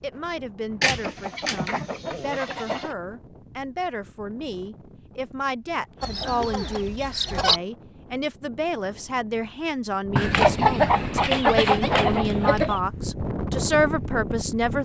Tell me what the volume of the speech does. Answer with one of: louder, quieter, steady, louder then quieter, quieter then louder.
louder.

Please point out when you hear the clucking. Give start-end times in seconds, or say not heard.
0.8-3.0, 6.0-7.6, 10.2-12.8.